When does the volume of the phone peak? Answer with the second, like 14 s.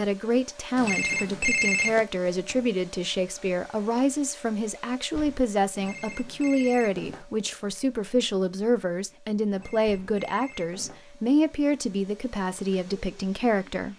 2 s.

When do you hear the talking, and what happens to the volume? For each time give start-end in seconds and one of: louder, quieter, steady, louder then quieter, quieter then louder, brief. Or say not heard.
0.0-13.9 steady.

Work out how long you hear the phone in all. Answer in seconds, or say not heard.
4 s.